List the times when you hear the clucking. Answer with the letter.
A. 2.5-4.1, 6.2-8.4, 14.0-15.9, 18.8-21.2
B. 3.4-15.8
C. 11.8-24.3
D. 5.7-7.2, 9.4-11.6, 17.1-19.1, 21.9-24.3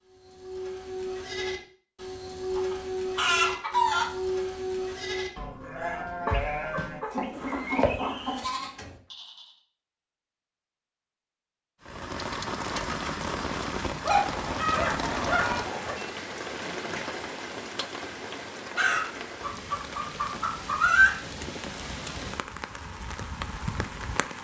A.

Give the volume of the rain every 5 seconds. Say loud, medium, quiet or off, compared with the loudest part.
off, off, loud, loud, medium.